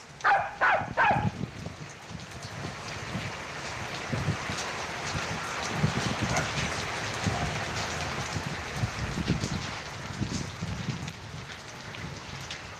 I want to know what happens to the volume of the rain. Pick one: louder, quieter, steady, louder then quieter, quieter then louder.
louder then quieter.